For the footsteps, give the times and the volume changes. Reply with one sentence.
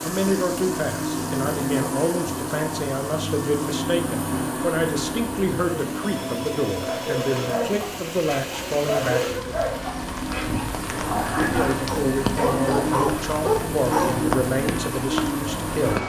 You can't hear the footsteps here.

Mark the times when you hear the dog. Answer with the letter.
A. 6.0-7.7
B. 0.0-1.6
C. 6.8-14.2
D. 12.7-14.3
C.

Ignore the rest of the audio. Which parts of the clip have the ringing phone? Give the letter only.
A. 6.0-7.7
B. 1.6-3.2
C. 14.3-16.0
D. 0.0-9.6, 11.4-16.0
A.